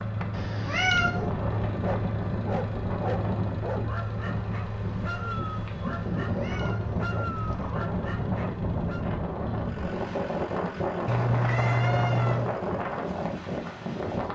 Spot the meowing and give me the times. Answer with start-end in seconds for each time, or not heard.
0.3-1.2, 6.2-7.7, 11.1-12.6.